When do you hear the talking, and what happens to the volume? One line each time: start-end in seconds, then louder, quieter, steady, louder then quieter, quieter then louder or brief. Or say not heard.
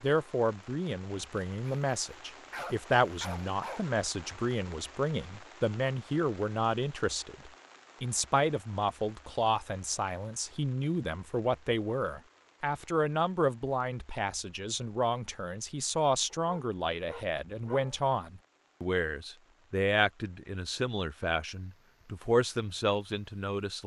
0.0-23.8 steady.